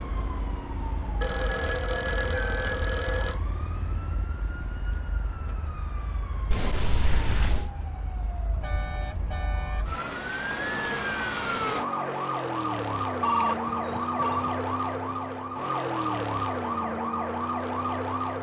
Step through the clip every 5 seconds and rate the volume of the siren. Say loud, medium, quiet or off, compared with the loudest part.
medium, quiet, loud, loud.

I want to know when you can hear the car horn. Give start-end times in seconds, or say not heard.
2.2-4.2, 8.6-10.0, 13.7-14.6.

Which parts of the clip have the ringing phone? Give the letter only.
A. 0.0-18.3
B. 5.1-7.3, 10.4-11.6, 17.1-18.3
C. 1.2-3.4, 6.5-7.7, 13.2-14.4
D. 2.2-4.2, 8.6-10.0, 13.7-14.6
C.